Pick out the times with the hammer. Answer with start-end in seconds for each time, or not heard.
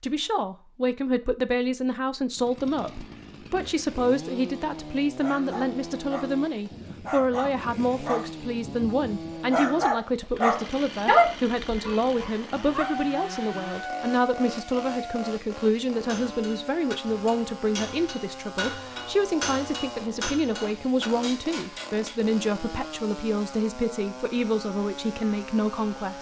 15.9-22.1.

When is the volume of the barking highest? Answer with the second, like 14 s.
11 s.